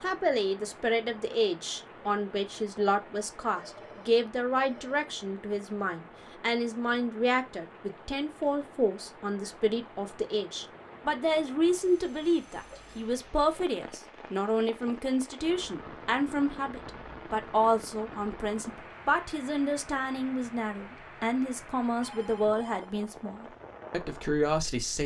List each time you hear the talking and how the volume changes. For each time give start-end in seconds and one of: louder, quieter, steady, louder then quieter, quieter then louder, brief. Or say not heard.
0.0-25.0 steady.